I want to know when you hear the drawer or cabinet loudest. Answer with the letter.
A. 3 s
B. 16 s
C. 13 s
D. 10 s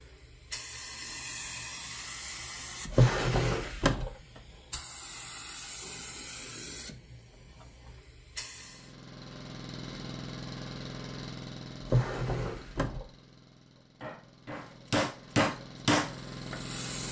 A.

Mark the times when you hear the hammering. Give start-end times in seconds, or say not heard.
13.8-16.8.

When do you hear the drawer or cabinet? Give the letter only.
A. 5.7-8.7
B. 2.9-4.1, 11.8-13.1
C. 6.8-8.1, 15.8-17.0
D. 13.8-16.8
B.